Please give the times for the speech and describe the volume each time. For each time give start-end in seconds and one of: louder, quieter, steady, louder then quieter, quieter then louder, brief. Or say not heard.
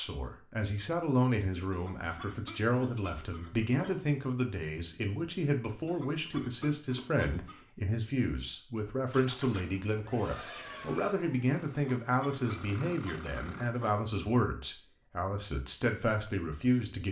0.0-17.0 steady.